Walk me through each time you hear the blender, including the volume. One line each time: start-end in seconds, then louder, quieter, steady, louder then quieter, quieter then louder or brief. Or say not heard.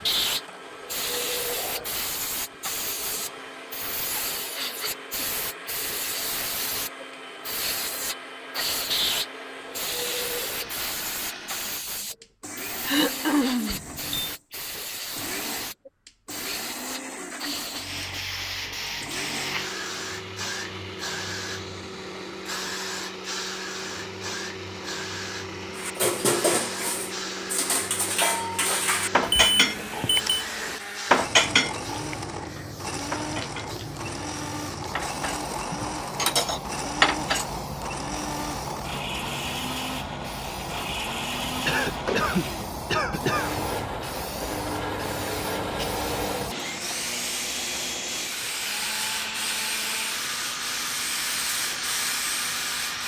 0.0-53.0 louder.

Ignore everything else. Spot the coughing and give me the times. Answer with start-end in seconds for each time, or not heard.
12.8-13.8, 41.6-43.6.